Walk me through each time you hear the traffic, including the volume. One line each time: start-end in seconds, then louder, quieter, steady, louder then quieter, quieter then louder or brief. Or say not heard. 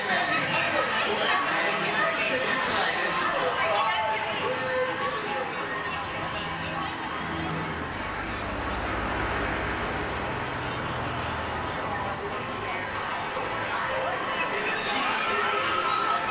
0.0-16.2 louder then quieter.